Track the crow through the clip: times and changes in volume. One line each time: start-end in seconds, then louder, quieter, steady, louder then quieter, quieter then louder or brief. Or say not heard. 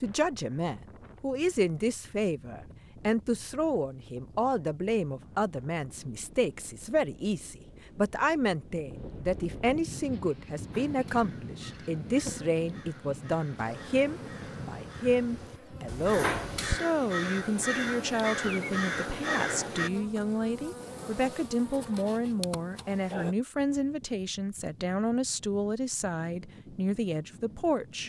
10.7-19.9 louder.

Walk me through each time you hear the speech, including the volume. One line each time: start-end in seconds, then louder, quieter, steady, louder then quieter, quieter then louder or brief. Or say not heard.
0.0-28.0 steady.